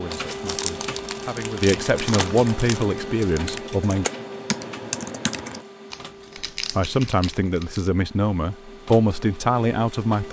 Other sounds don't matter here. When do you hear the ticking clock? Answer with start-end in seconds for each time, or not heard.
not heard.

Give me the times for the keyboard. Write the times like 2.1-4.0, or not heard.
1.7-5.7.